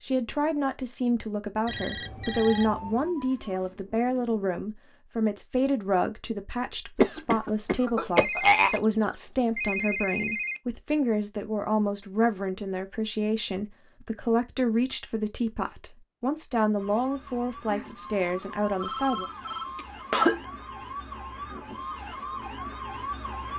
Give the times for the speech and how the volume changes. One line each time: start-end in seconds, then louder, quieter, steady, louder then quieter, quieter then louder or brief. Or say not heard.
0.0-19.2 steady.